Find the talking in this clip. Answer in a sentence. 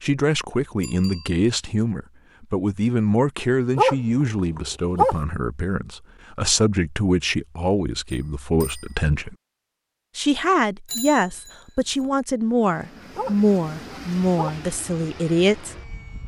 You can hear the talking from 0.0 to 9.3 s and from 10.2 to 15.8 s.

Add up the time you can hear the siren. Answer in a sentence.
You can't hear the siren here.